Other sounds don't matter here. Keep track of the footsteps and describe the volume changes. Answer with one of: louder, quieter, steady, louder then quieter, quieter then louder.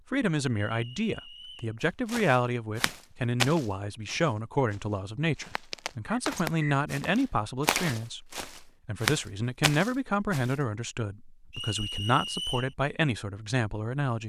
quieter then louder.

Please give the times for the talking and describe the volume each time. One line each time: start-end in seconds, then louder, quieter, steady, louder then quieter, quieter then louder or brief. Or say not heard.
0.1-14.2 steady.